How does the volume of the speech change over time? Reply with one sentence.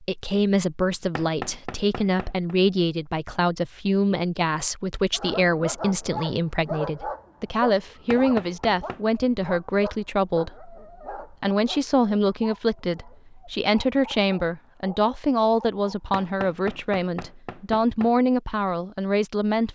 The volume of the speech stays about the same.